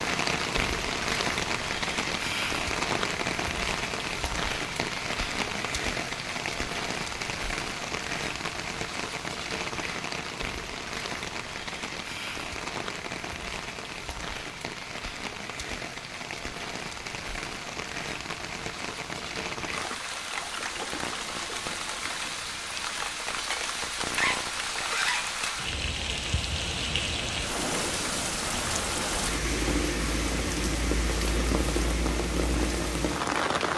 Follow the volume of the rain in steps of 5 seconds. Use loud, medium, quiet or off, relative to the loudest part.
loud, loud, medium, medium, loud, loud, loud.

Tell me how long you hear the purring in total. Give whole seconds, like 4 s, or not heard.
not heard.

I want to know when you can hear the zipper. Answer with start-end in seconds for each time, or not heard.
24.1-25.2.